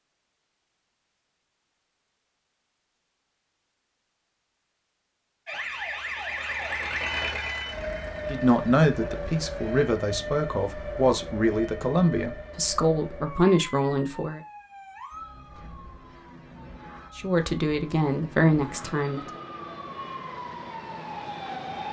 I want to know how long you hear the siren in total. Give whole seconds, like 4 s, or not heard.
16 s.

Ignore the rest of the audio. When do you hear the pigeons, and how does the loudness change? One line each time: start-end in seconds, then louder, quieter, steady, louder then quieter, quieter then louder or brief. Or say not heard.
not heard.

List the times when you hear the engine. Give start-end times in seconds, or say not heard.
5.5-9.9.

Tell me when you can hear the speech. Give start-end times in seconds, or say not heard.
8.2-14.4, 17.1-19.2.